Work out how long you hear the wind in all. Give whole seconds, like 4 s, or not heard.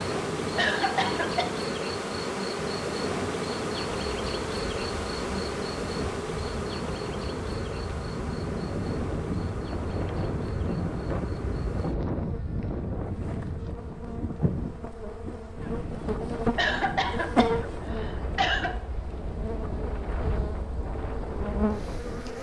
22 s.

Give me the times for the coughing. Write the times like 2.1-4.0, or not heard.
0.6-1.5, 16.6-18.8.